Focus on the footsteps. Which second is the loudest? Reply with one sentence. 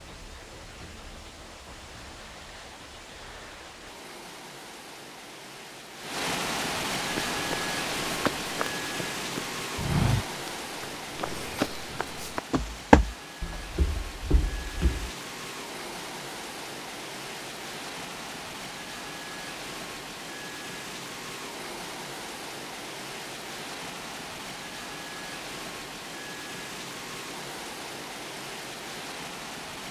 The loudest moment of the footsteps is at 13 seconds.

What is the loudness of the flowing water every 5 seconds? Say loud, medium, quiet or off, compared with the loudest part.
quiet, loud, medium, medium, medium, medium.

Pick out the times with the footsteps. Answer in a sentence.
You can hear the footsteps from 7.1 to 15.1 s.